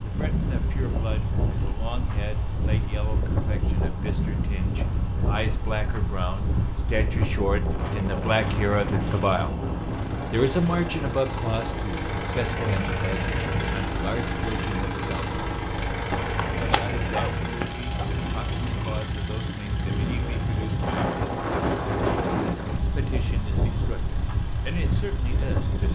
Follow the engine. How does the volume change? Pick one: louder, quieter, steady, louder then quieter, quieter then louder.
louder then quieter.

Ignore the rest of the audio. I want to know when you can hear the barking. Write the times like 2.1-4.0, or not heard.
16.1-18.1.